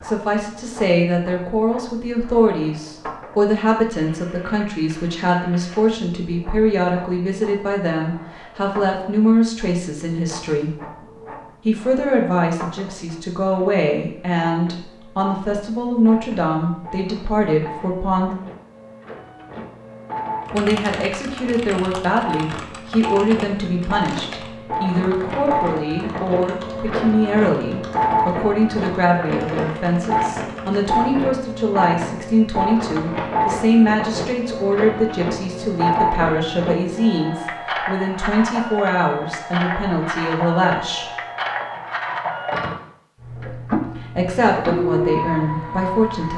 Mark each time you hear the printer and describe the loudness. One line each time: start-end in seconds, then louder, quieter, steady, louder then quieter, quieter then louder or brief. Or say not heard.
0.0-46.3 louder.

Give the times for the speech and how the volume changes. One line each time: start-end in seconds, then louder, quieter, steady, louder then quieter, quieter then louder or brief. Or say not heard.
0.0-10.7 steady
11.7-18.3 steady
20.5-41.1 steady
43.5-46.3 brief.